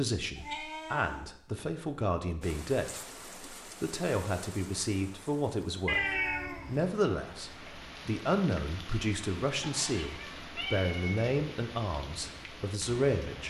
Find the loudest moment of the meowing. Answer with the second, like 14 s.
6 s.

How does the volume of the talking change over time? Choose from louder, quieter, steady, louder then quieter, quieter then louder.
steady.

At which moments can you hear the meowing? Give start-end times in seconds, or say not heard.
0.3-1.2, 5.8-6.9, 9.6-11.2.